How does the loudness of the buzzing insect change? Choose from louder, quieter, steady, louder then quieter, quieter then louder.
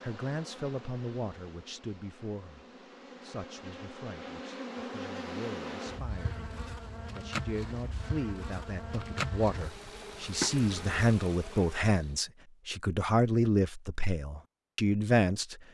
louder.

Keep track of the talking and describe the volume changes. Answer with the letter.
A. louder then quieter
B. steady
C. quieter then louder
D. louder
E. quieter
C.